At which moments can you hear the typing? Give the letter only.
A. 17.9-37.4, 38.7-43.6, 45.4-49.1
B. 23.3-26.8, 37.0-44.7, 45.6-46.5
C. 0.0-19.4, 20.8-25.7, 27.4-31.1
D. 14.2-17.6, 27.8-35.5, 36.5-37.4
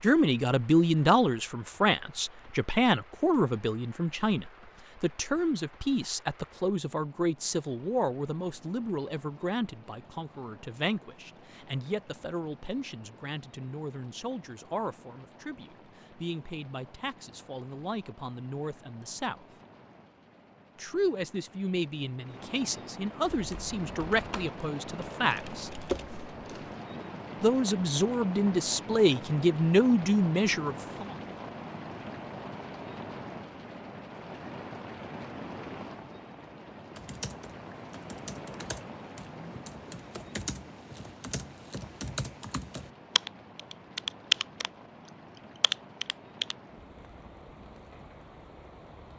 B.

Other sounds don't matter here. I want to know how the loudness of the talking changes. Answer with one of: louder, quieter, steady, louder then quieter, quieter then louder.
quieter then louder.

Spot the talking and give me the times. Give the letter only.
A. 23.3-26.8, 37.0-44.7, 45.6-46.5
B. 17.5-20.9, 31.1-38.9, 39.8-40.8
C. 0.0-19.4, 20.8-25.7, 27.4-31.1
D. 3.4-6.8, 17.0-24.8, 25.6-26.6
C.